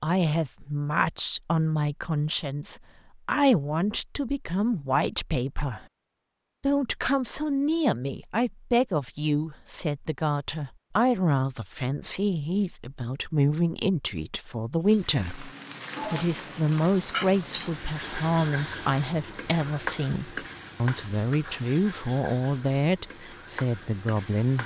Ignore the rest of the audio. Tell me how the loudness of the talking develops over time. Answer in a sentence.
The loudness of the talking stays about the same.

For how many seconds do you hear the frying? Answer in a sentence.
The frying can be heard for 10 seconds in total.